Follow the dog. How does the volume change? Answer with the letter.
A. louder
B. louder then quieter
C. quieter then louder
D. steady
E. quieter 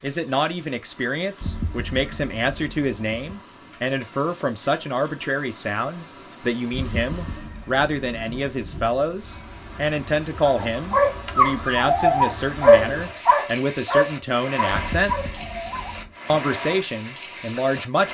E.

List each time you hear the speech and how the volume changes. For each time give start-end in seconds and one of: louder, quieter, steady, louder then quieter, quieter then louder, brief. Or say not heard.
0.0-15.2 steady
16.2-18.0 brief.